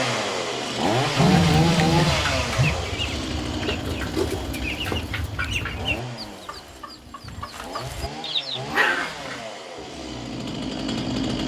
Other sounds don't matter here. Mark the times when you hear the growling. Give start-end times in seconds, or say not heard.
1.1-2.8, 8.7-9.4.